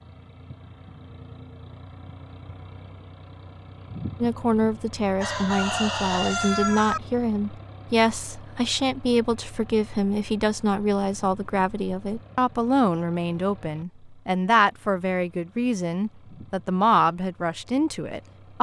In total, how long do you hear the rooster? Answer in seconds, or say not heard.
2 s.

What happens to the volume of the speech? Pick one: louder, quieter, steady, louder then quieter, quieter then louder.
steady.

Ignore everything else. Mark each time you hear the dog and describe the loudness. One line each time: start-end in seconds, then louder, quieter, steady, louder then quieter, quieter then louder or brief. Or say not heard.
not heard.